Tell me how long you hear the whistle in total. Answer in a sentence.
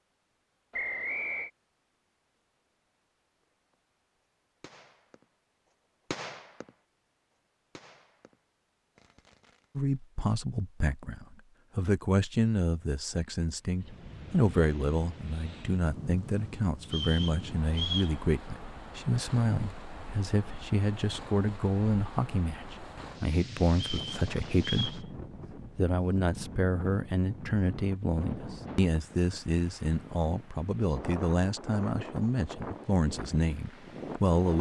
You can hear the whistle for 3 seconds altogether.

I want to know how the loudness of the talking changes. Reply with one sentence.
The volume of the talking stays about the same.